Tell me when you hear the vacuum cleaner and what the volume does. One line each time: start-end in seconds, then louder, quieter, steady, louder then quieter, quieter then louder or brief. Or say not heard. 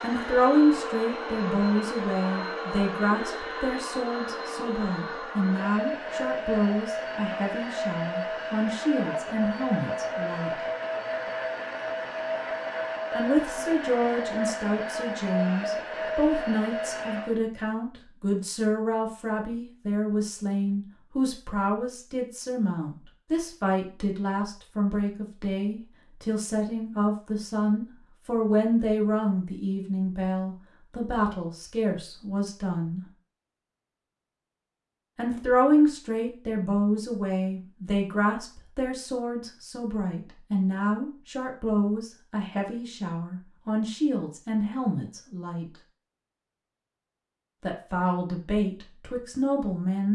0.0-17.4 steady.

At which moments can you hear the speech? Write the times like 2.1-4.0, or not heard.
0.0-10.6, 13.2-33.0, 35.1-45.6, 47.6-50.1.